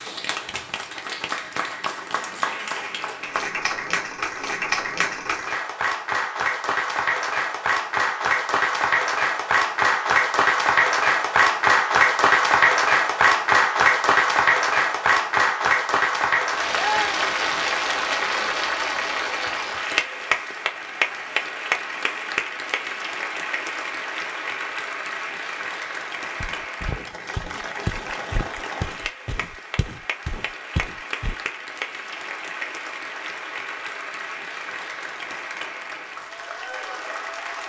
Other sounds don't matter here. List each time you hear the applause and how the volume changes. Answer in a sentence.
You can hear the applause from 0.0 to 37.6 s, getting louder then quieter.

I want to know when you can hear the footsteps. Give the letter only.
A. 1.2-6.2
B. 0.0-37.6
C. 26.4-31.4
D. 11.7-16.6
C.